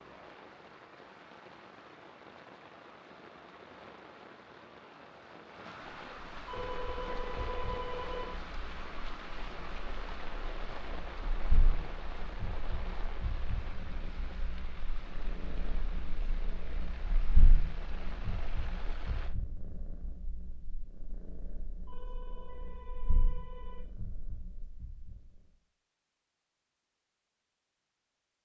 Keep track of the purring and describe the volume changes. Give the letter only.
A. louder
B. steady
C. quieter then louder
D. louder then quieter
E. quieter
D.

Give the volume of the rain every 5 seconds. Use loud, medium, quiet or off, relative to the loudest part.
medium, loud, loud, medium, off, off.